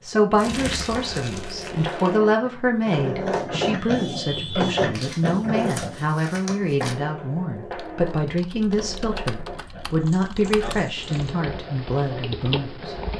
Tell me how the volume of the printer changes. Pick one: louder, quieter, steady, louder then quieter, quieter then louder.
louder then quieter.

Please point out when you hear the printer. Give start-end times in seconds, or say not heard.
0.0-13.1.